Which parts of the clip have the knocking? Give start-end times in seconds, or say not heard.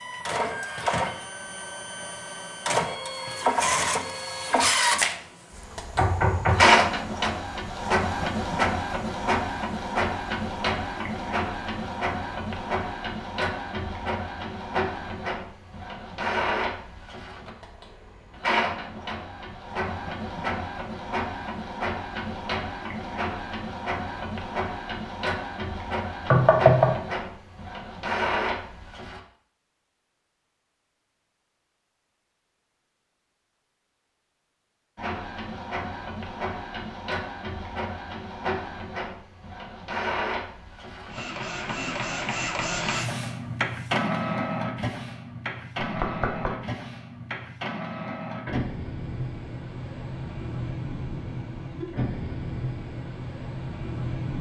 6.0-6.8, 26.3-26.9, 45.8-46.5.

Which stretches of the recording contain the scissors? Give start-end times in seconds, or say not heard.
not heard.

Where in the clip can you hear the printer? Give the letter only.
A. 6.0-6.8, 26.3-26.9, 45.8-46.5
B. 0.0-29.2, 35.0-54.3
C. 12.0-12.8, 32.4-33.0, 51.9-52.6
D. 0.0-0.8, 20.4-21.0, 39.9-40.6
B.